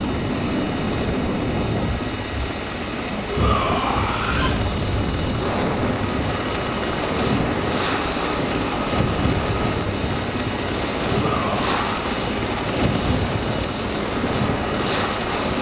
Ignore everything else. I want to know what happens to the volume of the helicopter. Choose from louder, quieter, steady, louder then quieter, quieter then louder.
steady.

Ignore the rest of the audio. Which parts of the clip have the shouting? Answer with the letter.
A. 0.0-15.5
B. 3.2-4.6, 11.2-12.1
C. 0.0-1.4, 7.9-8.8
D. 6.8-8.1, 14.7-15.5
B.